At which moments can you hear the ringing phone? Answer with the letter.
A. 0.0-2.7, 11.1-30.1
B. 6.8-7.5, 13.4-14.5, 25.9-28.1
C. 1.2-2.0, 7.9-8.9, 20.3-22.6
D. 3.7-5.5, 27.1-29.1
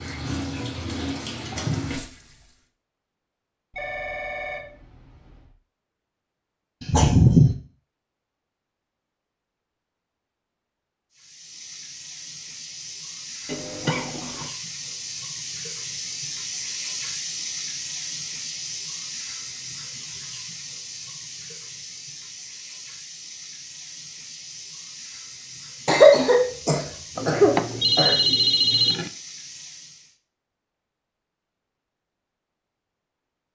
D.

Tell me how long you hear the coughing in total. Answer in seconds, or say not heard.
4 s.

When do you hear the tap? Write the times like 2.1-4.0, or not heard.
0.0-2.7, 11.1-30.1.